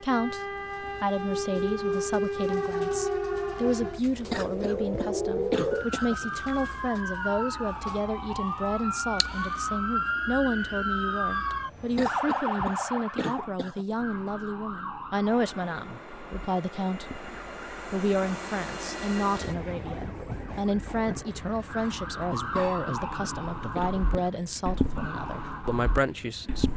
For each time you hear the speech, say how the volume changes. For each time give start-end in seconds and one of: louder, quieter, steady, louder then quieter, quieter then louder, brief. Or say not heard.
0.0-26.7 steady.